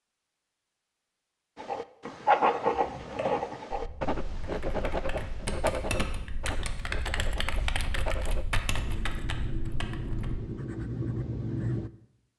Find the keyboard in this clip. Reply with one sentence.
The keyboard can be heard from 2.7 to 10.4 s.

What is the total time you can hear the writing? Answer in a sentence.
The writing can be heard for 10 seconds in total.